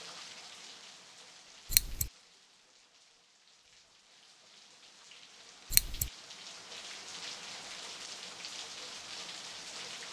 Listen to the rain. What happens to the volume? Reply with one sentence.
The loudness of the rain goes down, then up.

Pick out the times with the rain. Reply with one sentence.
The rain can be heard from 0.0 to 10.0 s.